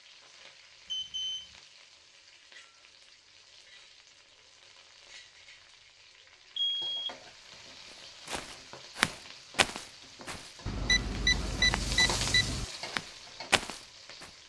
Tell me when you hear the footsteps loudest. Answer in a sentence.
The loudest moment of the footsteps is at 9 seconds.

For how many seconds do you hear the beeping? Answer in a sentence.
You can hear the beeping for 3 seconds altogether.